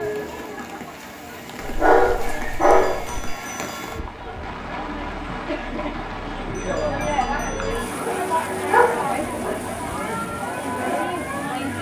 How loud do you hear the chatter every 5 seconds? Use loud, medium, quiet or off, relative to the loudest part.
medium, loud, loud.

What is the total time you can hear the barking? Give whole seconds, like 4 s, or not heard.
4 s.